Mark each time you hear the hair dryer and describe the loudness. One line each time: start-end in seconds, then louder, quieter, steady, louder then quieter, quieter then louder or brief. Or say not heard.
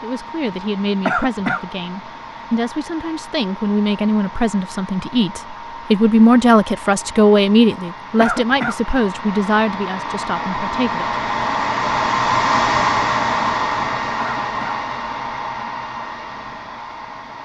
0.0-17.4 louder then quieter.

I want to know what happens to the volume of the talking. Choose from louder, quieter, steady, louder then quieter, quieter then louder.
louder then quieter.